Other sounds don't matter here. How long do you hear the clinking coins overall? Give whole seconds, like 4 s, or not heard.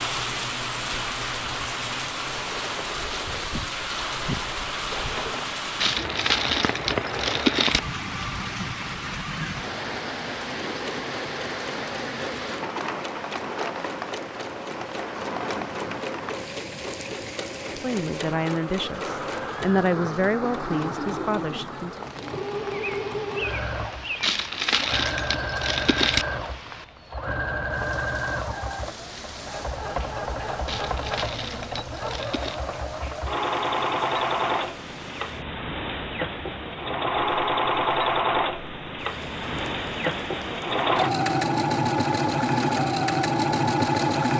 6 s.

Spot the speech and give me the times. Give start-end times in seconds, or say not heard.
17.8-22.1.